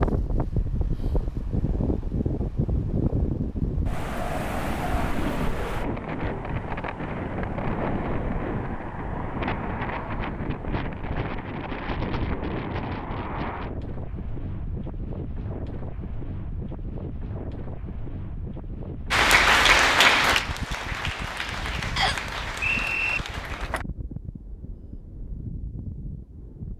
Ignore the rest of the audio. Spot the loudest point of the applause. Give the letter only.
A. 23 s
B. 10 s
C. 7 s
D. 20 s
D.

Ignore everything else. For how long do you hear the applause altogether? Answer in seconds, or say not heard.
5 s.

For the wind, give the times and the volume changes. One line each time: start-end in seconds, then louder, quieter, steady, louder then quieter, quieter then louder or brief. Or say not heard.
0.0-26.7 quieter.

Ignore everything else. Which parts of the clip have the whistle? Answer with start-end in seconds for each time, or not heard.
21.9-23.2.